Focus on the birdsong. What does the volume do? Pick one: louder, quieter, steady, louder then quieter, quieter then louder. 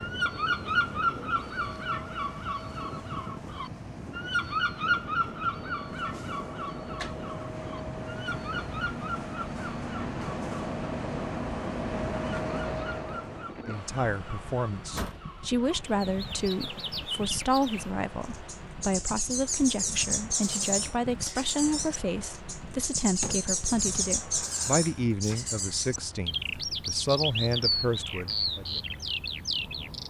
quieter then louder.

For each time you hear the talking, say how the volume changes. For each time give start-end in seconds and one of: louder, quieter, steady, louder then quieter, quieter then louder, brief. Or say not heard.
13.7-28.8 steady.